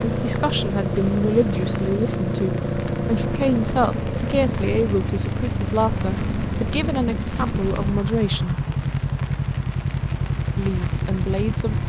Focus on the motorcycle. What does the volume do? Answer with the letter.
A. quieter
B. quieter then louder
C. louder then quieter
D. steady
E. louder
D.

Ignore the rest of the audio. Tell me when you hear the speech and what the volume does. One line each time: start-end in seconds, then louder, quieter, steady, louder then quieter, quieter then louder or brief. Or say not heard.
0.0-8.7 steady
10.6-11.8 brief.